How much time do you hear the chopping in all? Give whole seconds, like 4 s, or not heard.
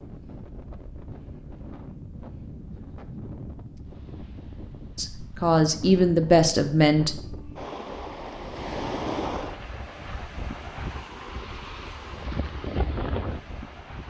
not heard.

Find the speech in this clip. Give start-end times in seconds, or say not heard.
5.0-7.1.